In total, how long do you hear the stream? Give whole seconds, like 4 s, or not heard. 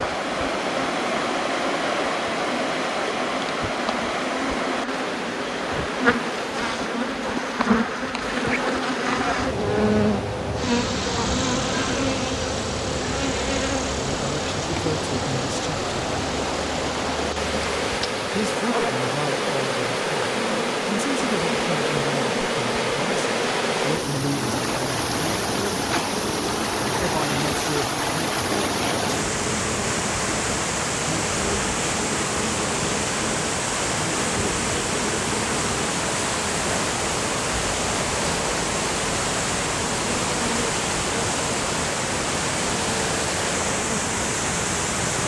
45 s.